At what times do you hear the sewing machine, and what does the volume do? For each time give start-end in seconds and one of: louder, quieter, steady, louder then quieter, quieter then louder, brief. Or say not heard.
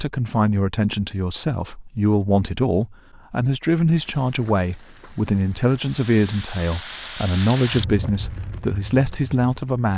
not heard.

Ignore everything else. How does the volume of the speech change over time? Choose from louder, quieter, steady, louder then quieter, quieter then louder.
steady.